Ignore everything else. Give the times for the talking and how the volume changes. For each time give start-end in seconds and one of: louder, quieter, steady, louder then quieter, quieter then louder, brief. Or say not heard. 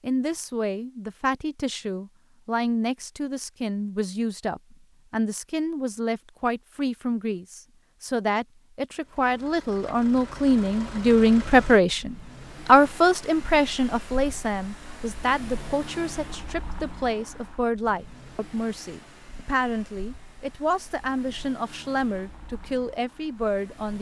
0.0-23.9 louder then quieter.